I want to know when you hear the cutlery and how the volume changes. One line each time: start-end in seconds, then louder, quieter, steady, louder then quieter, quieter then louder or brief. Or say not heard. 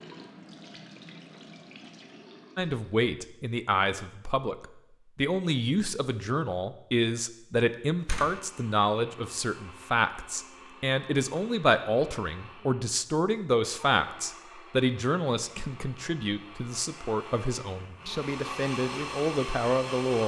not heard.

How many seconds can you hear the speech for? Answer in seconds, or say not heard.
18 s.